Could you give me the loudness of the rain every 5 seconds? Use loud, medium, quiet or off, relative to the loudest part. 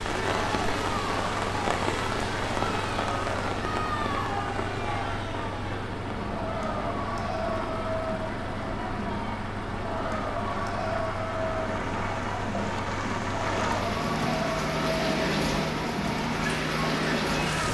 loud, medium, loud, loud.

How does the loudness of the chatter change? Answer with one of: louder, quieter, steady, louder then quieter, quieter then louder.
steady.